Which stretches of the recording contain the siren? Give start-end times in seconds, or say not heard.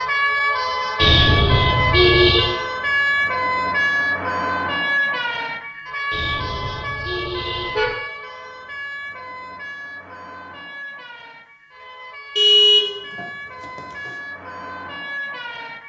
0.0-15.8.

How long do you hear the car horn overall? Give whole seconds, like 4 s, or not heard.
5 s.